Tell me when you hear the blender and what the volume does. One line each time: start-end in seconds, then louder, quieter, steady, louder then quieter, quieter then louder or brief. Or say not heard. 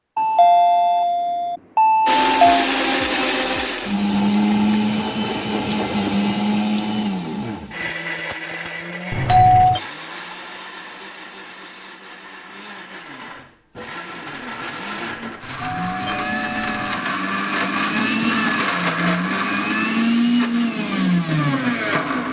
2.0-22.2 quieter then louder.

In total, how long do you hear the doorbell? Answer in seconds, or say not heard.
5 s.